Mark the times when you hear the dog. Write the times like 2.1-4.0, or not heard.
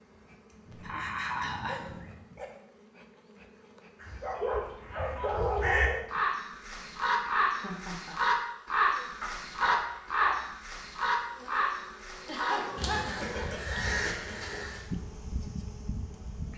0.7-2.5, 4.2-6.0, 9.2-10.4, 12.6-14.7.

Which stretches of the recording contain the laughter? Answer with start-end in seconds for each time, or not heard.
0.5-1.9, 7.5-8.2, 12.2-14.0.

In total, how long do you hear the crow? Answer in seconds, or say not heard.
11 s.